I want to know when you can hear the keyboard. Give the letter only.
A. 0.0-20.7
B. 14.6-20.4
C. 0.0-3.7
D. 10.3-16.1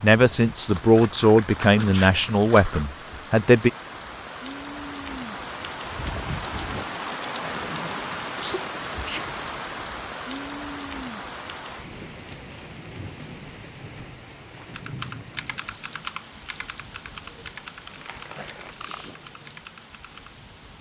B.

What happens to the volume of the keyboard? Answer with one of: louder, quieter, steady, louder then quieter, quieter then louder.
quieter.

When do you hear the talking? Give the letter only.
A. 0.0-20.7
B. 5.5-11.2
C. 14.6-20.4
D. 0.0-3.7
D.